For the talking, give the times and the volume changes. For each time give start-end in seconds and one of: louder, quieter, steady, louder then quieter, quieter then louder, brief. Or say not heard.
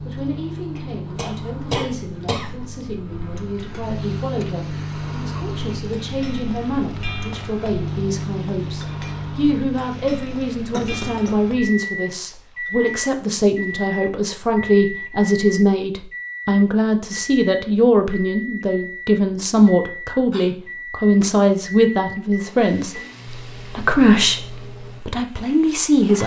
0.0-26.2 louder.